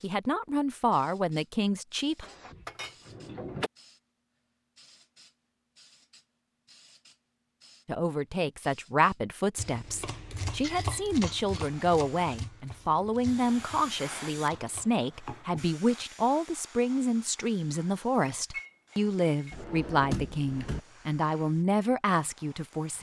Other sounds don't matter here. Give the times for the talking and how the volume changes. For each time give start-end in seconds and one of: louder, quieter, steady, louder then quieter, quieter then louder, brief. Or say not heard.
0.0-2.2 brief
7.8-22.9 steady.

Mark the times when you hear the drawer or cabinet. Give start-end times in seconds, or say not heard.
2.2-3.7, 19.5-20.8.